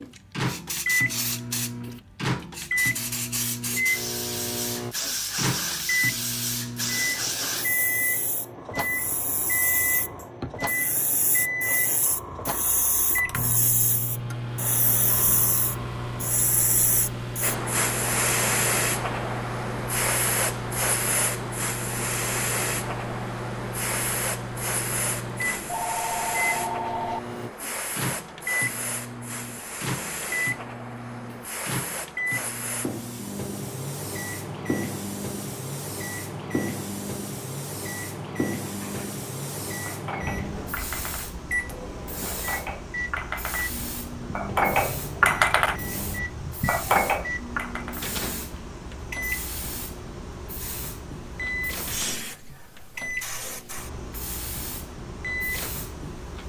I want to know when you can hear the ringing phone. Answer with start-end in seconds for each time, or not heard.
25.6-27.2.